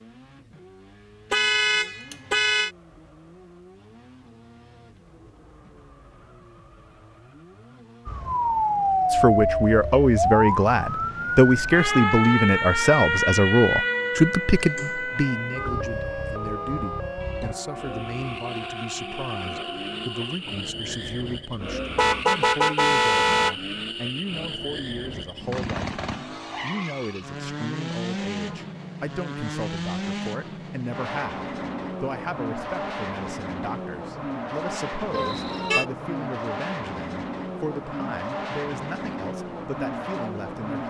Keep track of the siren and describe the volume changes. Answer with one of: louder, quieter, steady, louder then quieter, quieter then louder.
quieter.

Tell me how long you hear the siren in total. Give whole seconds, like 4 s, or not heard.
12 s.